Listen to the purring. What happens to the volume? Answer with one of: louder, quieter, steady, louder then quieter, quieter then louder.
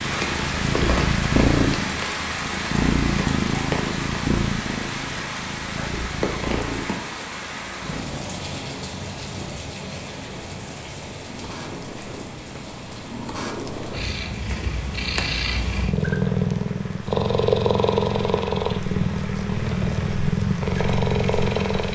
quieter then louder.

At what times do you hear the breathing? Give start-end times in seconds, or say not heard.
not heard.